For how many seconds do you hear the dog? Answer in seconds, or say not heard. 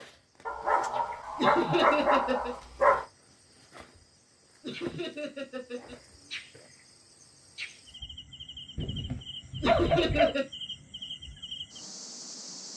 4 s.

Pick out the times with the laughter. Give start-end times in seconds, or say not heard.
1.4-2.5, 4.6-6.0, 9.6-10.4.